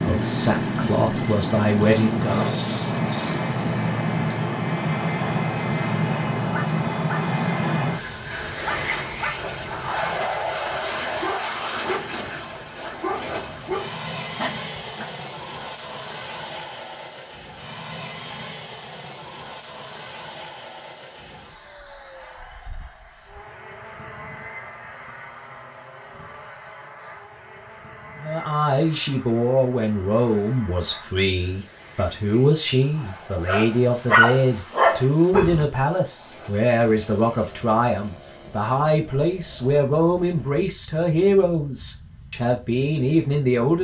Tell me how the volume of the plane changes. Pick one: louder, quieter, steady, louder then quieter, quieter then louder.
quieter.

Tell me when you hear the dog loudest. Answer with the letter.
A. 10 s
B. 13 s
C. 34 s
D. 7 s
C.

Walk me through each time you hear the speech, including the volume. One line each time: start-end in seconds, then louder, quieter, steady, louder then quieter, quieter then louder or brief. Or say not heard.
0.0-2.5 brief
28.2-43.7 steady.